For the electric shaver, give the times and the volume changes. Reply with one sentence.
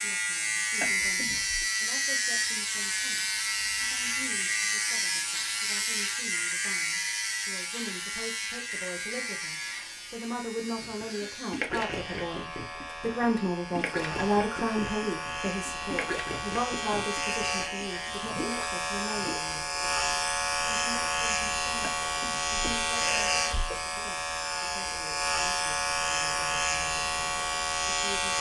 The electric shaver can be heard from 0.0 to 28.3 s, getting quieter then louder.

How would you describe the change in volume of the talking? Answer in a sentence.
The loudness of the talking goes up, then down.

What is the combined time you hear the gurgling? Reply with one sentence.
You can hear the gurgling for 9 seconds altogether.